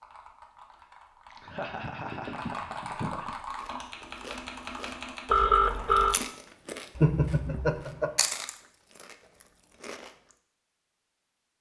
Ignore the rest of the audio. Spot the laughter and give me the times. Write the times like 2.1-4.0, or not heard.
1.3-3.4, 7.0-8.1.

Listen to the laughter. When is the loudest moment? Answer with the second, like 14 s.
7 s.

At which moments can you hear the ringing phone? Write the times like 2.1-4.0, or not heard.
5.2-6.2.